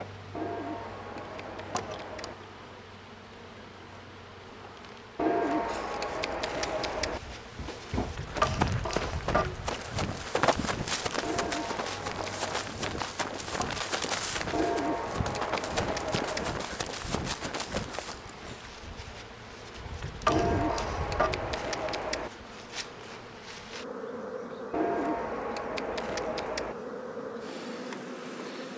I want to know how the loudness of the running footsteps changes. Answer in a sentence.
The loudness of the running footsteps stays about the same.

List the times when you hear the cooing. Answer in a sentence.
You can hear the cooing from 0.3 to 2.4 s, from 5.2 to 7.2 s, from 11.2 to 12.8 s, from 14.5 to 16.6 s, from 20.2 to 22.3 s and from 24.7 to 26.8 s.